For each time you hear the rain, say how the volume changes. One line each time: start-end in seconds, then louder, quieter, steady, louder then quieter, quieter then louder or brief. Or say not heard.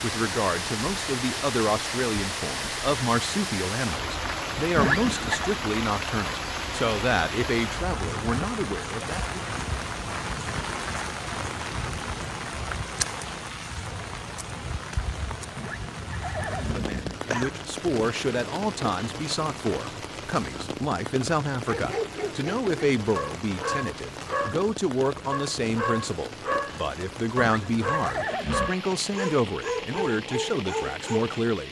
0.0-31.6 quieter.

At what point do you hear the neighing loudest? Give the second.
5 s.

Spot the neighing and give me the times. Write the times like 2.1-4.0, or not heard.
4.8-5.5, 15.6-17.6, 27.4-28.8.